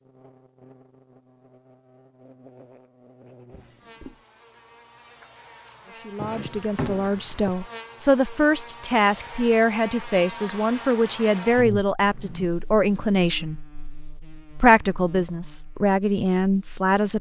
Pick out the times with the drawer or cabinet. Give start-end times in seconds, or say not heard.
3.5-4.2, 6.2-7.5, 11.9-12.5.